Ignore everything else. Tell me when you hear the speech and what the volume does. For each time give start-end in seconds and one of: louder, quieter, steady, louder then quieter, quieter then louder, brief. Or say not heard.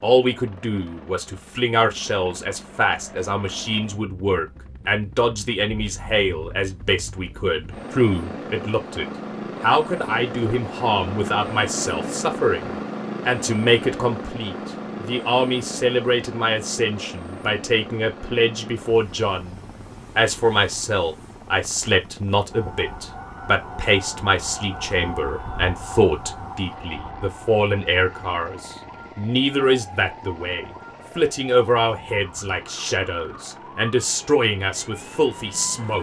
0.0-35.9 steady.